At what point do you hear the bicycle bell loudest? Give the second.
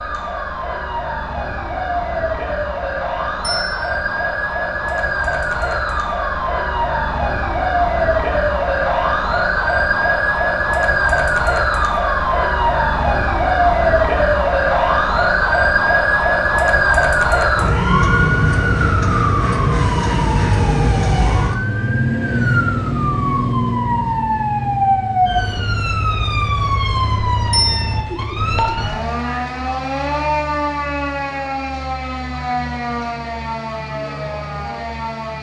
28 s.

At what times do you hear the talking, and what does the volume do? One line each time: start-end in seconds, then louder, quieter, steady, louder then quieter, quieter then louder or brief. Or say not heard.
not heard.